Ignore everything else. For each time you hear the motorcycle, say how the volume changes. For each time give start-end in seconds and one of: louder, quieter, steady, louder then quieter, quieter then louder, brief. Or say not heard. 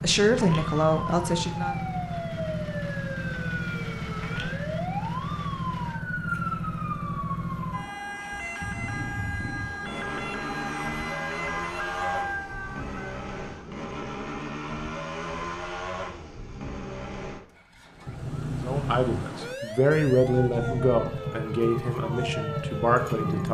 0.0-23.4 steady.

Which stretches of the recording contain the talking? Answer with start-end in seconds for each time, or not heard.
0.0-1.8, 18.6-23.4.